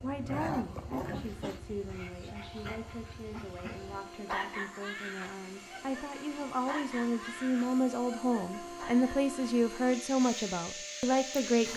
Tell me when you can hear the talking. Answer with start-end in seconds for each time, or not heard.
0.0-11.7.